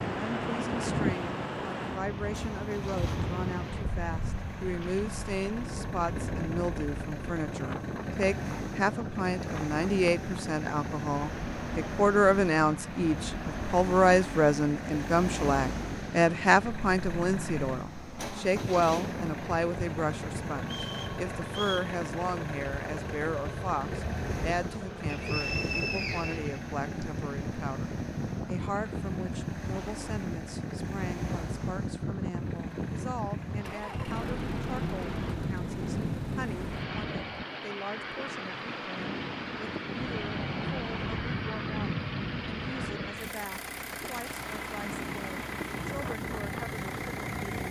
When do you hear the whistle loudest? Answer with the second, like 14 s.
26 s.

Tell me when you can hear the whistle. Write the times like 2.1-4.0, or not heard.
20.6-21.9, 25.1-27.1.